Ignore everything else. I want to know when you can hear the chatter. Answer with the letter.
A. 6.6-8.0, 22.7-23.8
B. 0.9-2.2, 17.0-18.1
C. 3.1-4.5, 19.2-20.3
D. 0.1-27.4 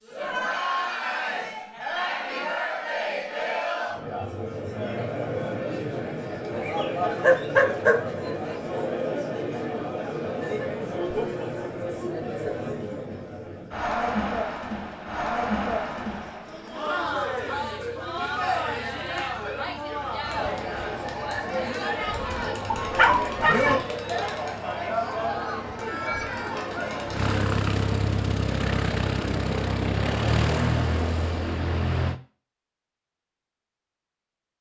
D.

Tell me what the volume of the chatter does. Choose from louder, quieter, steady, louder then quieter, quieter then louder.
steady.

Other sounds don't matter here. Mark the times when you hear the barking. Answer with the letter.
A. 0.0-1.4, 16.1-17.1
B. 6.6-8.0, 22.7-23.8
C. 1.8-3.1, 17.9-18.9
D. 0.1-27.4
B.